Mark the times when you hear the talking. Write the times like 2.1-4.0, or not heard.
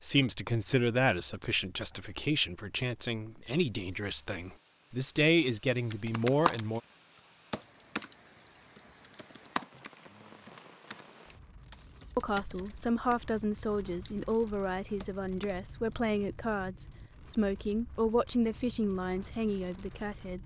0.0-6.8, 12.2-20.4.